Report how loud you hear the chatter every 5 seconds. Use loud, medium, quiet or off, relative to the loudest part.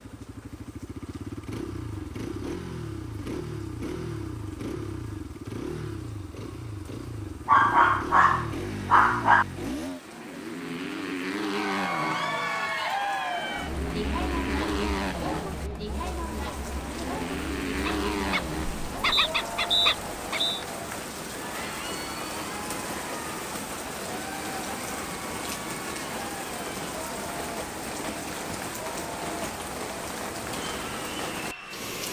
off, off, loud, medium, medium, medium, medium.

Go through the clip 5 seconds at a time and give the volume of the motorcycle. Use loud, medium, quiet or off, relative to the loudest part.
loud, loud, loud, loud, off, off, off.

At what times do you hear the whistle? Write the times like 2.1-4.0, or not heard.
19.1-20.6.